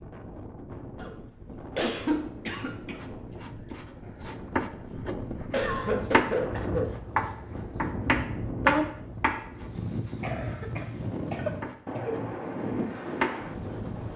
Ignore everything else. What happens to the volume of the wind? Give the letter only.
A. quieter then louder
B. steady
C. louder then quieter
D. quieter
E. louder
E.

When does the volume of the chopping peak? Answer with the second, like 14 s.
9 s.